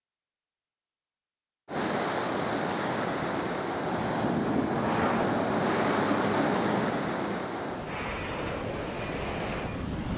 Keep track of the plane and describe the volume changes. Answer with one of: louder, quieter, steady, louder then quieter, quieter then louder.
quieter.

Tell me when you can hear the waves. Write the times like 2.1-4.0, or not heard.
1.6-10.1.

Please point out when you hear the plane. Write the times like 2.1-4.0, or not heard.
4.5-10.0.